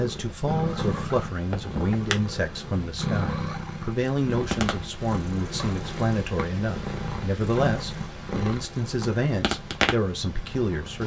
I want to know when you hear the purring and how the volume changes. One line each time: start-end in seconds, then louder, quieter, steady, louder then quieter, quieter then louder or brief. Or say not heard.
0.0-11.0 steady.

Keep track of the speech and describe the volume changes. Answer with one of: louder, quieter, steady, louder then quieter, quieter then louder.
steady.